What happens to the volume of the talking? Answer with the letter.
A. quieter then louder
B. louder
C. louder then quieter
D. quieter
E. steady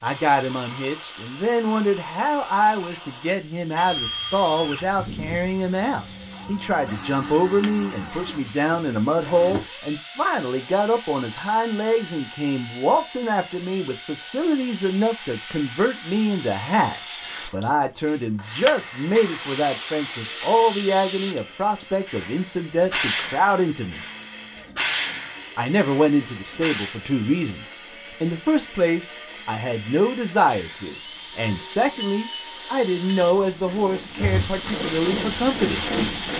E.